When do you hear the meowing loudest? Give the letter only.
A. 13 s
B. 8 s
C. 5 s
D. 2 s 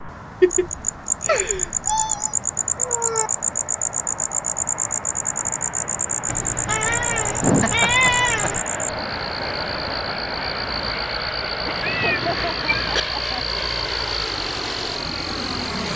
B.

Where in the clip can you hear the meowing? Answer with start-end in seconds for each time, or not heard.
1.2-3.3, 6.2-8.7, 11.8-13.0.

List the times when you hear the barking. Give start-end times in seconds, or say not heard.
not heard.